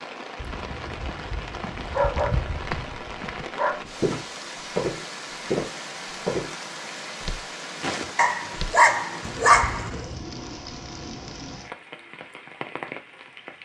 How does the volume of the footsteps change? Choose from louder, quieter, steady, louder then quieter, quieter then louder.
louder then quieter.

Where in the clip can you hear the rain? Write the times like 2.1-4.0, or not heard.
0.0-13.6.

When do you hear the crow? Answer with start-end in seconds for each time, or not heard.
not heard.